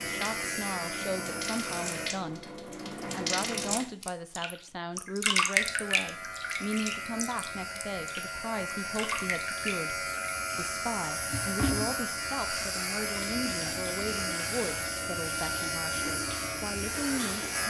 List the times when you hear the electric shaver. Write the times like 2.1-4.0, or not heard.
0.0-2.1, 5.5-17.6.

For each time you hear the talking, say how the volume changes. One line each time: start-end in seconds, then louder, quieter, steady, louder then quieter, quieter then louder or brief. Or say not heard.
0.0-2.5 brief
3.1-17.6 steady.